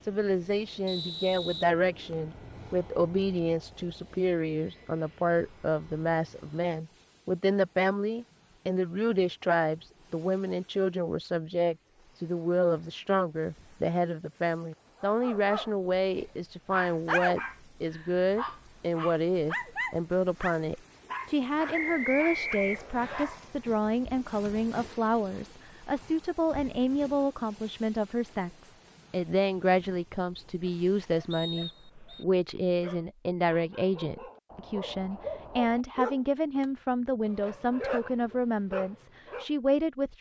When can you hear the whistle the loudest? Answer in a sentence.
The loudest moment of the whistle is at 22 seconds.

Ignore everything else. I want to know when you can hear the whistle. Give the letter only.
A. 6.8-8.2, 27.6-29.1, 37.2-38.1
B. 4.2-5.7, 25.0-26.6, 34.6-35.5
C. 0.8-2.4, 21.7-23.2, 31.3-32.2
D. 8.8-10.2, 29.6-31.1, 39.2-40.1
C.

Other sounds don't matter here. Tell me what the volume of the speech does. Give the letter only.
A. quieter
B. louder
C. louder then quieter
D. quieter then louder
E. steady
E.